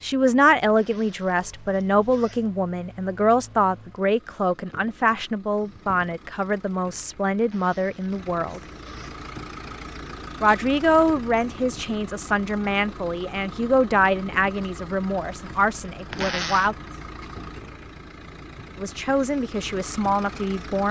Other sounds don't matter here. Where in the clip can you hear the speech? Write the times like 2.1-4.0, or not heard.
0.0-8.6, 10.4-16.8, 18.8-20.8.